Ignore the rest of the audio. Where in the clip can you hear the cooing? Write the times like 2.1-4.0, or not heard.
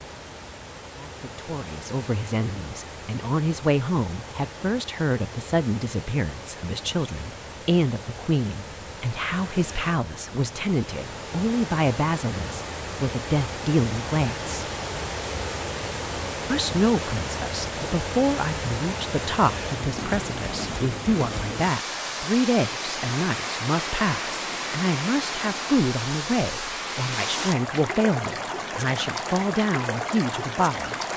not heard.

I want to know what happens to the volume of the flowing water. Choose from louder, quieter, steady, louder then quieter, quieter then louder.
louder.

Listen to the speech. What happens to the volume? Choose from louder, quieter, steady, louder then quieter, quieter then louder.
steady.